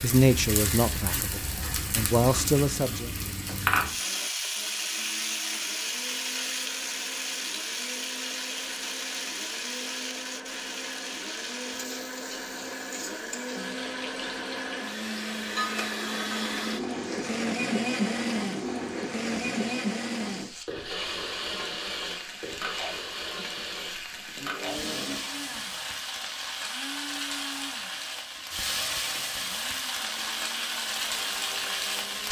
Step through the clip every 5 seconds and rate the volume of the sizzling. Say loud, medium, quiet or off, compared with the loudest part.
loud, loud, medium, medium, medium, loud, loud.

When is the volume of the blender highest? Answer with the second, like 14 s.
18 s.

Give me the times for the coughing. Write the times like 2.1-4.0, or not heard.
not heard.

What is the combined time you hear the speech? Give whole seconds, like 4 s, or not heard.
3 s.